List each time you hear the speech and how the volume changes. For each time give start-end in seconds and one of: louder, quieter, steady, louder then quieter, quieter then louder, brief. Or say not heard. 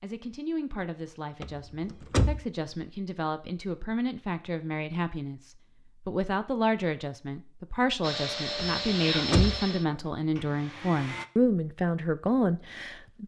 0.0-13.2 louder.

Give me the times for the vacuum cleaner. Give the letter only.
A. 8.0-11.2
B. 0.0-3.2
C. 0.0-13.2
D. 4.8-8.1
A.